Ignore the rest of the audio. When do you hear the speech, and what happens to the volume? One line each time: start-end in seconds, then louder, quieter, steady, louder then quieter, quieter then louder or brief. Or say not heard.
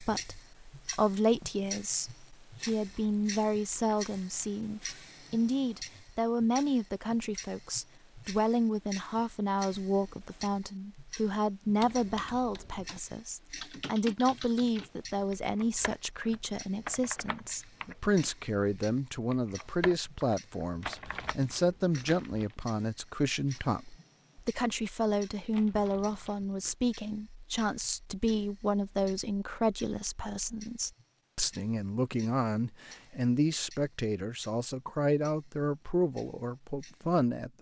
0.0-37.5 steady.